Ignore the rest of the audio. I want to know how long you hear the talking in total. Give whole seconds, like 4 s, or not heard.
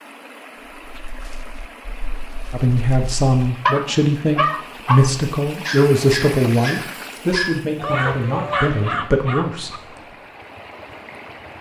7 s.